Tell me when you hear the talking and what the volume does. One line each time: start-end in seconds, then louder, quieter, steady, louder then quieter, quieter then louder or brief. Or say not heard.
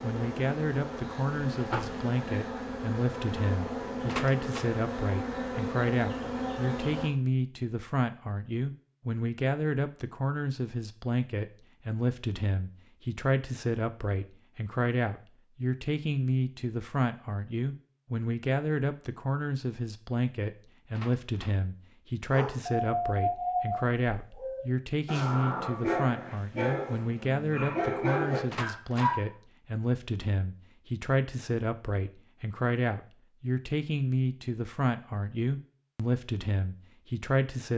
0.0-37.7 steady.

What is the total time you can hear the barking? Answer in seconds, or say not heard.
7 s.